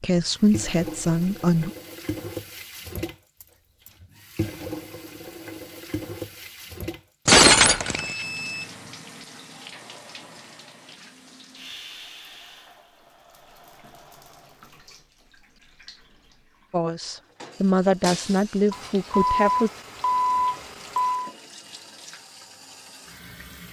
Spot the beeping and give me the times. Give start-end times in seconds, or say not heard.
3.4-3.9, 8.0-9.0, 18.7-21.3.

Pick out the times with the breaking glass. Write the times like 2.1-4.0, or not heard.
7.2-8.2, 18.0-19.1.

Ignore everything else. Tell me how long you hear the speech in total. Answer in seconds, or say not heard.
5 s.